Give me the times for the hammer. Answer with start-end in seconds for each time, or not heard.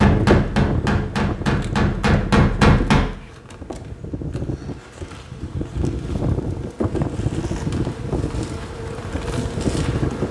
0.0-3.1.